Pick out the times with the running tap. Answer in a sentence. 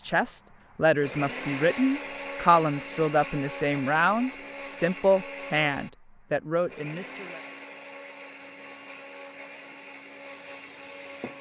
The running tap can be heard from 8.2 to 11.3 s.